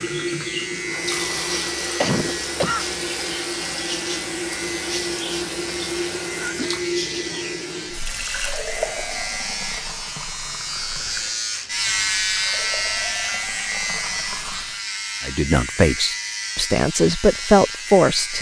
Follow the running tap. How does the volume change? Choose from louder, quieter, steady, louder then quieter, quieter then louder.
quieter.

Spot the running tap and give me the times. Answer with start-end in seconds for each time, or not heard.
0.0-14.8.